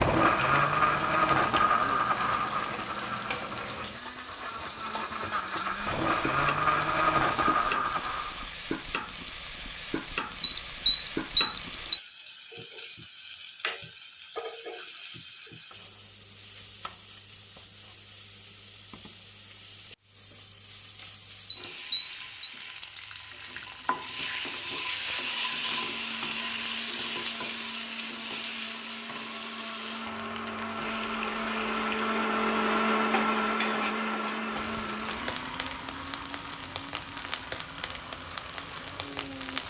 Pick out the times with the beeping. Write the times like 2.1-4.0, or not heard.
10.4-12.0, 21.5-22.5.